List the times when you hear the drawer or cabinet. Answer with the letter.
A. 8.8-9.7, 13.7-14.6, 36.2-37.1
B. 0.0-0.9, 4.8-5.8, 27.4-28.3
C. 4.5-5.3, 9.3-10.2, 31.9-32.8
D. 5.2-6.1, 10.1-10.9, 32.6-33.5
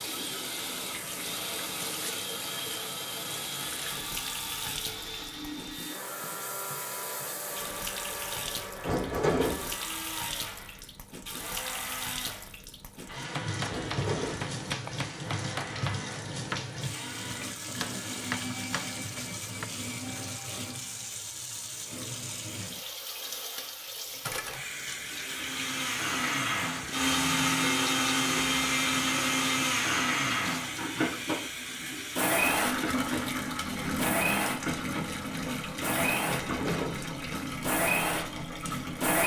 A.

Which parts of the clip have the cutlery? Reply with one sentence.
The cutlery can't be heard in this clip.